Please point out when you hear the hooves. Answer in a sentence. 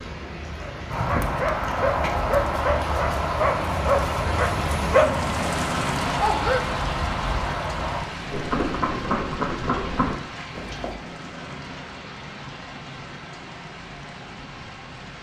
You can hear the hooves from 0.9 to 10.9 s.